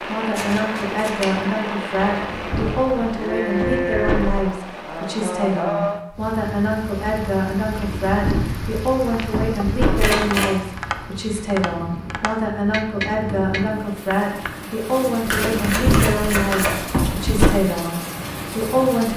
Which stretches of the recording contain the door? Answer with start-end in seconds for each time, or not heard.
2.0-4.4, 7.7-10.1, 15.3-17.6.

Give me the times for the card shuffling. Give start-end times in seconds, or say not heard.
0.3-1.3, 9.9-10.6, 15.2-16.8.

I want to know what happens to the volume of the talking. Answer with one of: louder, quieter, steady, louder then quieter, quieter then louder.
steady.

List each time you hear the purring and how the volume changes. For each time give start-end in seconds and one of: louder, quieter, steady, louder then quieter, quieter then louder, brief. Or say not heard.
not heard.